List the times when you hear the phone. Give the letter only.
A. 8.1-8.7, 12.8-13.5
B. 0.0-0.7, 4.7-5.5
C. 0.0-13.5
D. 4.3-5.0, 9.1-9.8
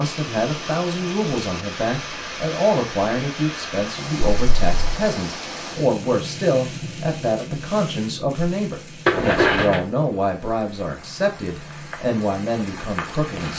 D.